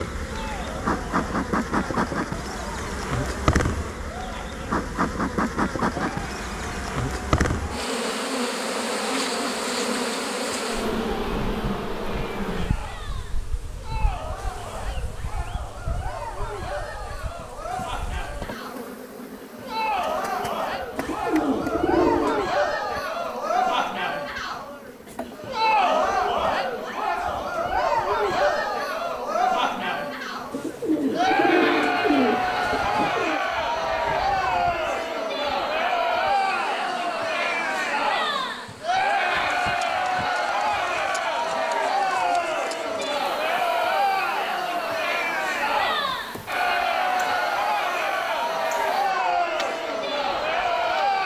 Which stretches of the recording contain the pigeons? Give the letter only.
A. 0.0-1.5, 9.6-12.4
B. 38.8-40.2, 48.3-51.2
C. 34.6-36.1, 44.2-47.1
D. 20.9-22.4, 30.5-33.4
D.